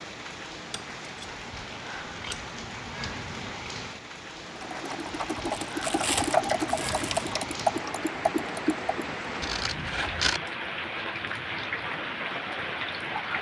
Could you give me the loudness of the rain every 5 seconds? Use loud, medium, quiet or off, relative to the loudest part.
medium, loud, loud.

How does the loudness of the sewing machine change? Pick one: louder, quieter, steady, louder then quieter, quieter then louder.
louder then quieter.